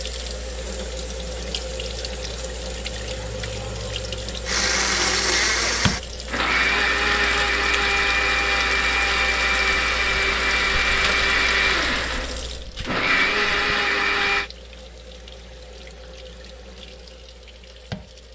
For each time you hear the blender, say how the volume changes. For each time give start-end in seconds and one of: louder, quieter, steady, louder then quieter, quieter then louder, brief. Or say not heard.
4.5-14.5 steady.